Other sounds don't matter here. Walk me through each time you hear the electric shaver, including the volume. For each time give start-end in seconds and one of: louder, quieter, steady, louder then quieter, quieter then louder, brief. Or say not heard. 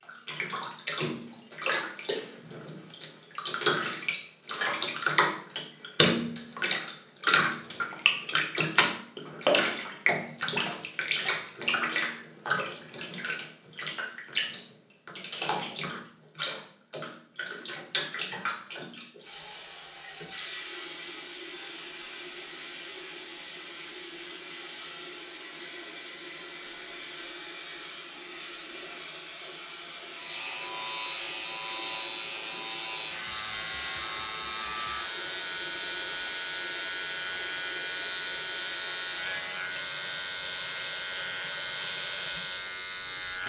30.1-43.4 steady.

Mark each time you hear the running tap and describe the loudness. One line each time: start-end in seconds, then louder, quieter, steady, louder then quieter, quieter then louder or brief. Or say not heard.
0.0-43.4 quieter.